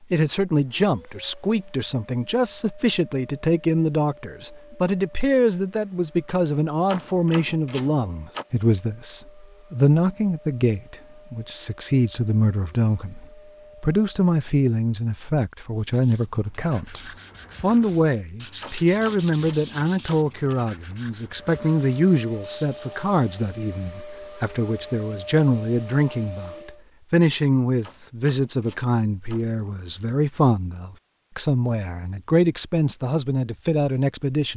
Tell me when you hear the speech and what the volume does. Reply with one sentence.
You can hear the speech from 0.1 to 34.5 s, at a steady volume.